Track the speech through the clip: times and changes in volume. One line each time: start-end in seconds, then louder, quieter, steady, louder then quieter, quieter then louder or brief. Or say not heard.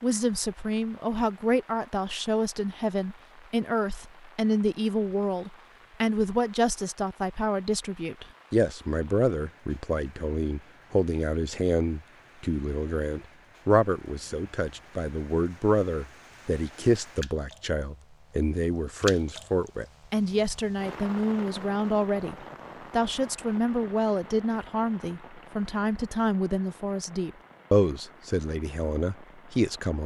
0.0-30.0 steady.